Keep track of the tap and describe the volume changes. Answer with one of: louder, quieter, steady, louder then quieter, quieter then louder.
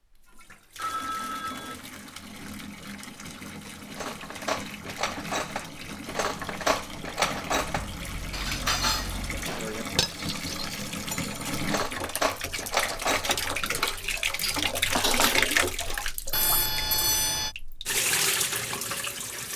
louder.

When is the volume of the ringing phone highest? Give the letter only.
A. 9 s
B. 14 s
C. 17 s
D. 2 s
C.